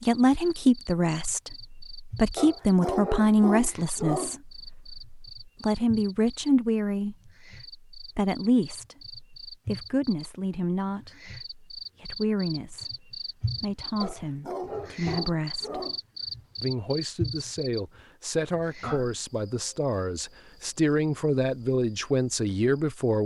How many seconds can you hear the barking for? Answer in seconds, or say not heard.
4 s.